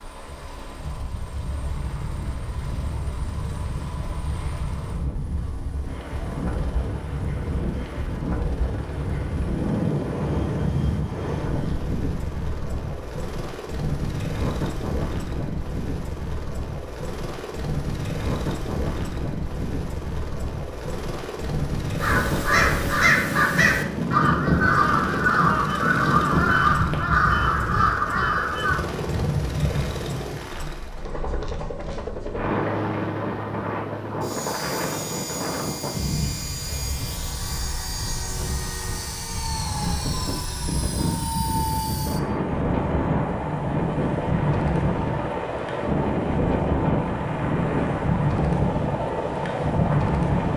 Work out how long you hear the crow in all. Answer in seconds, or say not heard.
7 s.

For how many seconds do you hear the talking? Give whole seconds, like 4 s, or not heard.
not heard.